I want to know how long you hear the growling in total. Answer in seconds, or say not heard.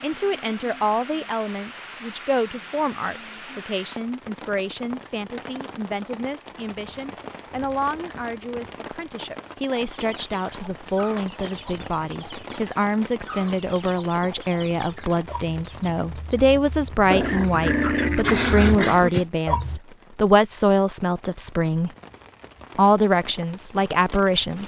2 s.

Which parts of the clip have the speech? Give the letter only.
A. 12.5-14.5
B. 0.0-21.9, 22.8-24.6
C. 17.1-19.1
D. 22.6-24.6
B.